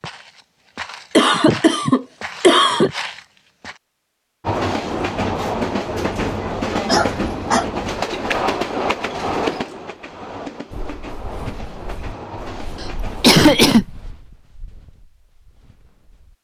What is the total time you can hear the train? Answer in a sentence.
You can hear the train for 9 seconds altogether.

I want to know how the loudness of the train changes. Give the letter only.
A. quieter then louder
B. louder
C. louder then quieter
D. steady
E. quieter
E.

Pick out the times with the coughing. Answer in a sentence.
You can hear the coughing from 1.1 to 2.9 s, from 6.8 to 7.7 s and from 12.8 to 13.8 s.